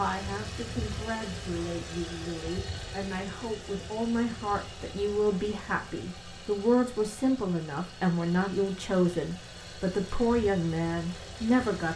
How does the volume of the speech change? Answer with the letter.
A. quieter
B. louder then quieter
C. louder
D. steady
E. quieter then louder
C.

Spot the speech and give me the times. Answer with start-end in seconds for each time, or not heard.
0.0-11.9.